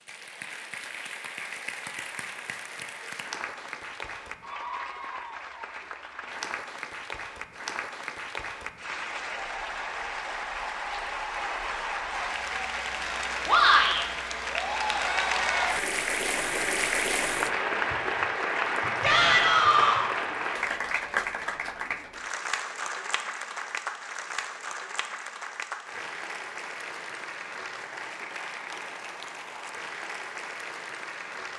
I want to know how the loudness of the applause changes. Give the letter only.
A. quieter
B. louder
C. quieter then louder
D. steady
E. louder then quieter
E.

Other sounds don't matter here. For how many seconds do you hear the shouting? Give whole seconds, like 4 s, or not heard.
2 s.